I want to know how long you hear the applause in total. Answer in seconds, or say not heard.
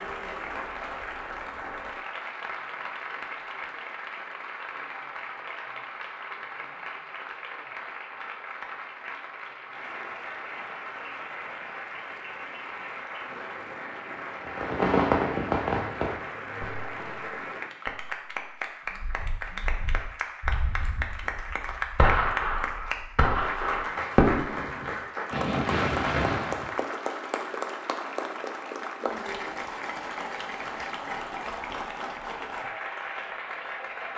34 s.